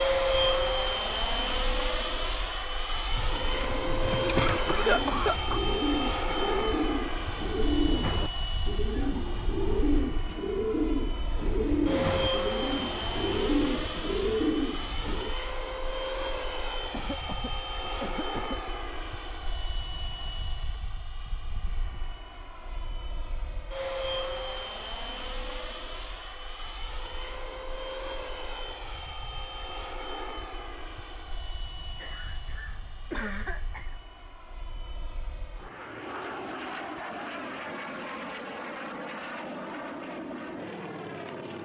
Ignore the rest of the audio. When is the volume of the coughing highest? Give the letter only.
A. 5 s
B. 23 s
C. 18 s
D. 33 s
A.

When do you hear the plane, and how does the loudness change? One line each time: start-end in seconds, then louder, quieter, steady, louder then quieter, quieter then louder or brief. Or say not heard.
0.0-41.6 quieter.